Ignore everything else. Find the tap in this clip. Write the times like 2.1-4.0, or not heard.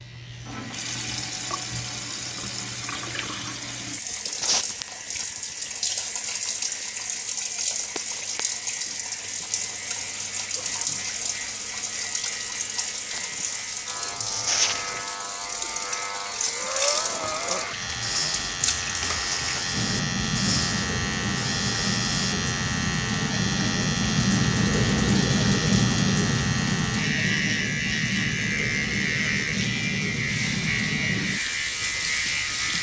0.0-32.7.